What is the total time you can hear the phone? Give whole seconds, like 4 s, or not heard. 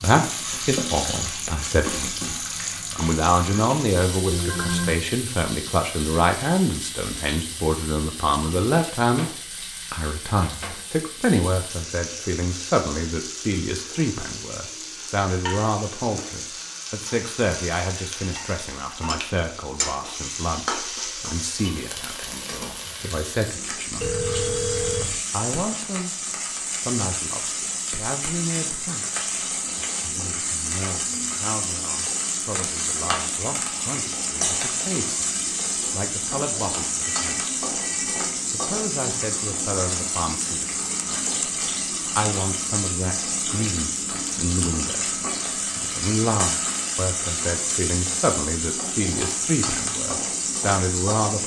3 s.